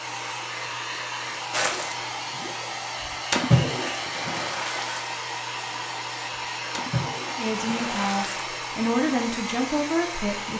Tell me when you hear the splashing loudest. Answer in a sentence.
The volume of the splashing peaks at 3 seconds.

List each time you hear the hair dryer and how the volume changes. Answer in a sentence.
You can hear the hair dryer from 0.0 to 10.5 s, at a steady volume.